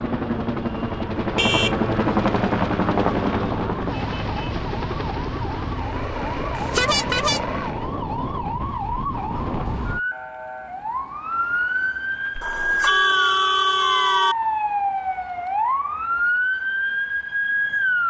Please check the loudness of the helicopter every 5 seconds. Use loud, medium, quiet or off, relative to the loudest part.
loud, medium, off, off.